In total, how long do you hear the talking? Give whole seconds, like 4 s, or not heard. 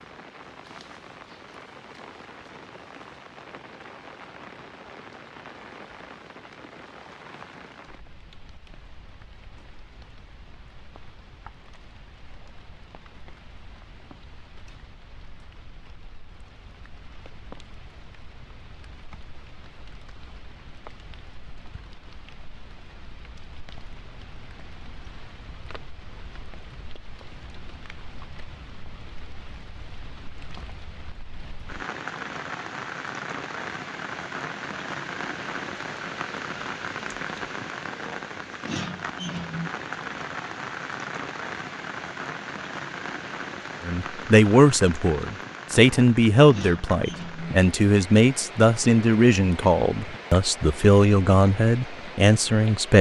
9 s.